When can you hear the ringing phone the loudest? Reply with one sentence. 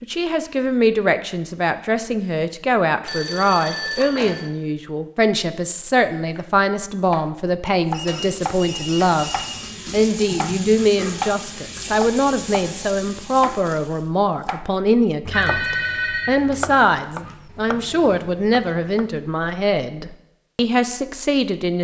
The volume of the ringing phone peaks at 16 seconds.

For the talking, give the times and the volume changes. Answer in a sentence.
The talking can be heard from 0.0 to 21.7 s, at a steady volume.